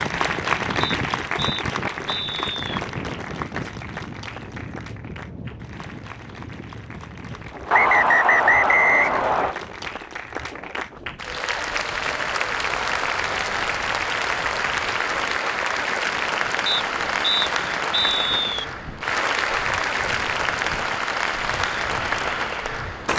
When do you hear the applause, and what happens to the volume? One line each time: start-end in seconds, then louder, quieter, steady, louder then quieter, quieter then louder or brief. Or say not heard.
0.0-23.1 quieter then louder.